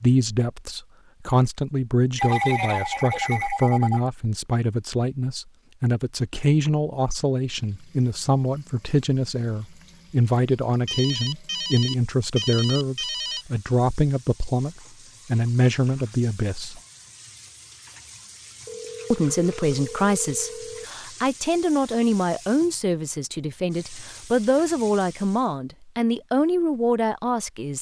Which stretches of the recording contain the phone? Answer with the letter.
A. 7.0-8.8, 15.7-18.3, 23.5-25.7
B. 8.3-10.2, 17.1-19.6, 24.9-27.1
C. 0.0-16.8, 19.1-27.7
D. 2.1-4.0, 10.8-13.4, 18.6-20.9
D.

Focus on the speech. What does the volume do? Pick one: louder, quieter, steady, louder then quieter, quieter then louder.
steady.